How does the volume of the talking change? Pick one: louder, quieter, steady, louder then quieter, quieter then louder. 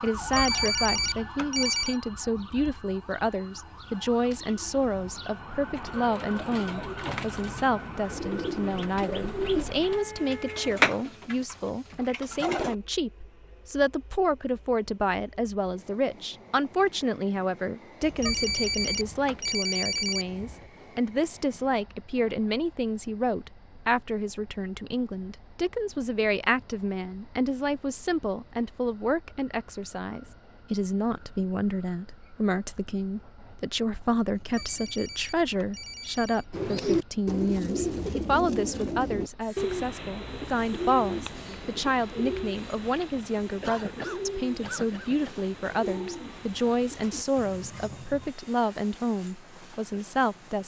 steady.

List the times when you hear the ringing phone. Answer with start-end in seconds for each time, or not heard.
0.1-1.9, 18.0-20.6, 34.4-36.5.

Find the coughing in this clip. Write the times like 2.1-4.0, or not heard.
43.6-45.4.